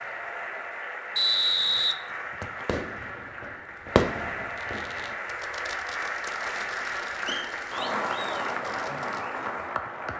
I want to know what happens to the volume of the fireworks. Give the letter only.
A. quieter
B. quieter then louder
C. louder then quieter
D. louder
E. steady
A.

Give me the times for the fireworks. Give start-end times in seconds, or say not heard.
2.6-9.2.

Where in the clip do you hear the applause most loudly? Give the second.
8 s.